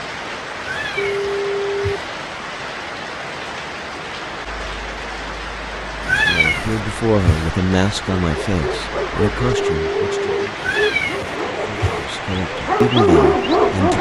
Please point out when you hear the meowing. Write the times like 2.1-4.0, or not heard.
0.6-2.0, 6.0-7.5, 10.6-12.1.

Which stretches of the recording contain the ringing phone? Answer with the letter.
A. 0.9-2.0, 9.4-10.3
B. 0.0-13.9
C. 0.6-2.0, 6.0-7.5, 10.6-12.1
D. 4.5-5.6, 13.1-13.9
A.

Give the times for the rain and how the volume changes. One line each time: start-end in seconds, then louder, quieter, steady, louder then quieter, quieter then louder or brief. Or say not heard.
0.0-13.9 steady.